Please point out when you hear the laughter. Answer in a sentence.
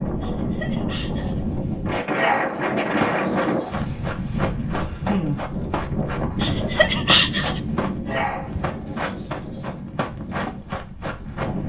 The laughter can be heard from 0.2 to 1.4 s and from 6.4 to 7.6 s.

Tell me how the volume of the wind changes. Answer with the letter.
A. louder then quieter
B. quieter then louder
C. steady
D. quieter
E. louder
D.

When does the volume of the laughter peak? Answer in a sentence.
The loudest moment of the laughter is at 7 seconds.